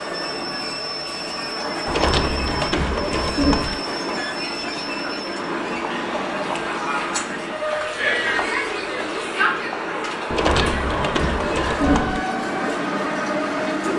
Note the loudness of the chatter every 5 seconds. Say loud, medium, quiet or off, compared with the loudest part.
medium, loud, medium.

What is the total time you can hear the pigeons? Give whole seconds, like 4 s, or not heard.
4 s.